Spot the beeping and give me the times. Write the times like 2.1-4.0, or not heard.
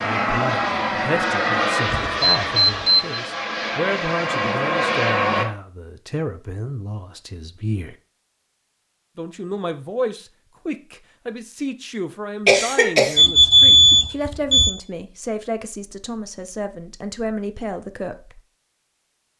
1.9-3.2, 13.2-14.7.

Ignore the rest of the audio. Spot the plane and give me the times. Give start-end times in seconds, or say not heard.
0.0-5.5.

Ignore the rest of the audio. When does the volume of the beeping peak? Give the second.
14 s.